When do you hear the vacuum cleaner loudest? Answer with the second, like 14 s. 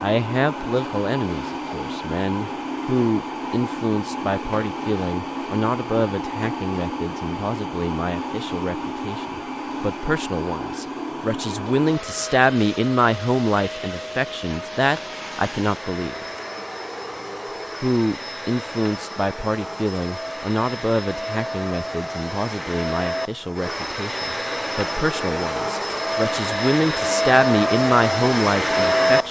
29 s.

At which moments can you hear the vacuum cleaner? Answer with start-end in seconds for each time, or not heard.
0.0-29.2.